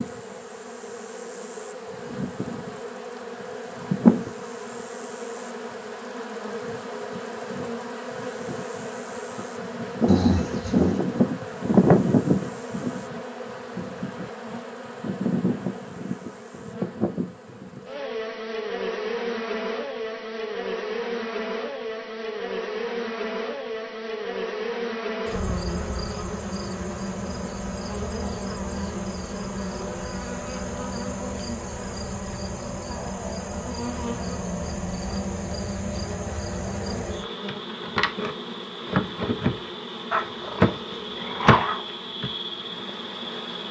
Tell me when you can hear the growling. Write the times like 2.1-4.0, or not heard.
10.1-11.0, 40.1-41.9.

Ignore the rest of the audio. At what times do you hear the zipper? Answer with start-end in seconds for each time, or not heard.
not heard.